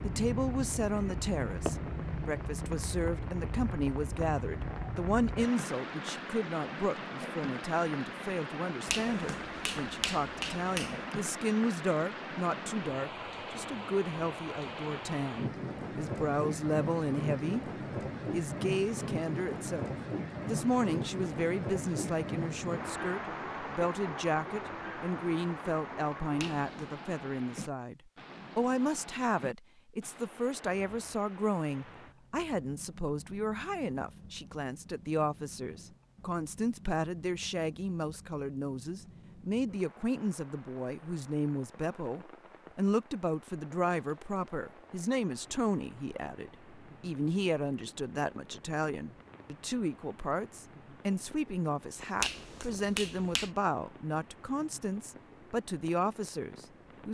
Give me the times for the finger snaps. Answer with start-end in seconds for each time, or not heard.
8.8-11.2, 26.4-26.9, 52.2-53.5.